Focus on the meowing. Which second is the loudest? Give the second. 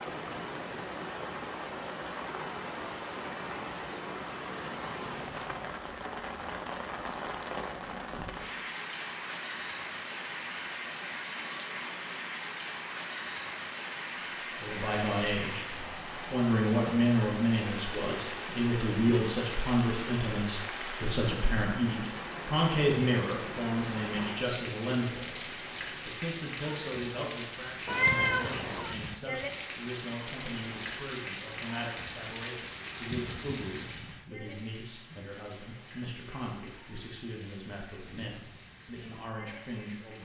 28 s.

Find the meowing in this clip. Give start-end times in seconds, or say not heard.
5.0-5.8, 27.9-28.9.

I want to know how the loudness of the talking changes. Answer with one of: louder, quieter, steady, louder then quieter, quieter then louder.
quieter.